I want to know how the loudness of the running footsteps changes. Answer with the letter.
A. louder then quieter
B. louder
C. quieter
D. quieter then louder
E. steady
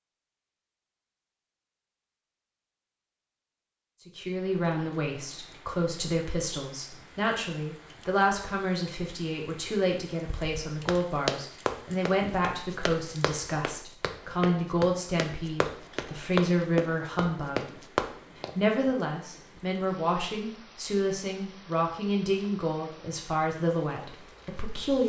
D.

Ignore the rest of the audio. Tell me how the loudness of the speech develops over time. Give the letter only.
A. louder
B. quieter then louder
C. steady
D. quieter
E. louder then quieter
C.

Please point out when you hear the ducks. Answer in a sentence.
You can't hear the ducks here.